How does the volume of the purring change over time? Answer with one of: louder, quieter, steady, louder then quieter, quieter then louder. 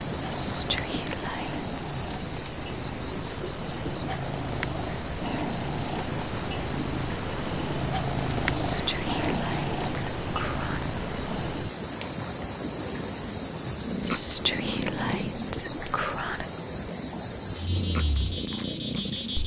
louder then quieter.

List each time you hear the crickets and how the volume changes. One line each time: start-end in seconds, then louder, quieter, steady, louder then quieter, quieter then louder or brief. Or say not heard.
0.0-19.4 steady.